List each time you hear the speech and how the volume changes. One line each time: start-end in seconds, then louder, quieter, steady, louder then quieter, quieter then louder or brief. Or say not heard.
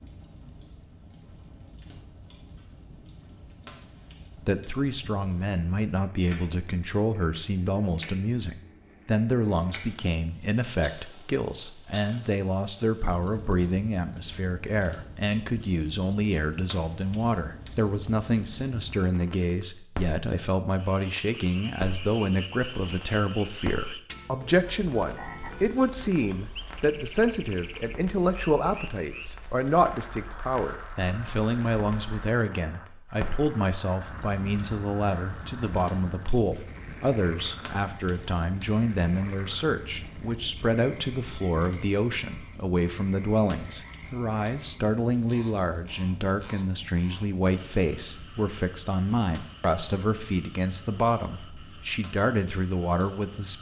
4.5-53.5 steady.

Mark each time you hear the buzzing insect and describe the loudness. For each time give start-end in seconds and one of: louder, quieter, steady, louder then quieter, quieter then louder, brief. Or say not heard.
not heard.